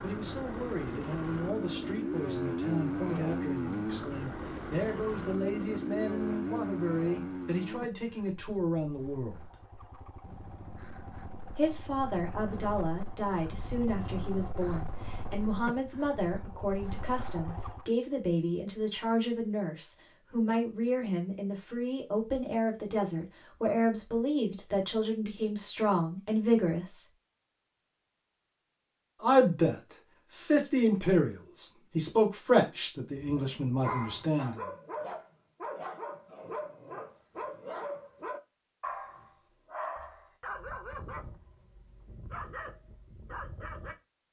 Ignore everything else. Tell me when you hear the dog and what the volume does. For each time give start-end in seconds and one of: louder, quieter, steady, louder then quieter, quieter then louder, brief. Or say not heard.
33.1-44.0 quieter.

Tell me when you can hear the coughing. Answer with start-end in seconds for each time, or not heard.
not heard.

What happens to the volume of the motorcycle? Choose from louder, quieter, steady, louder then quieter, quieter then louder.
quieter.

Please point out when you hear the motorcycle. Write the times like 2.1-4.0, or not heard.
0.0-17.9.